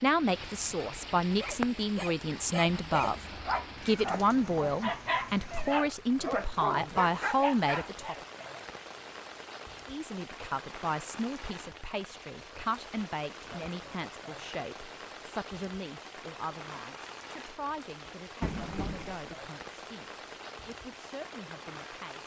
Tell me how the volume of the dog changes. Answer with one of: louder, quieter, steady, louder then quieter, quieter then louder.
louder.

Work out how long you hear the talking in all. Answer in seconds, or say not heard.
20 s.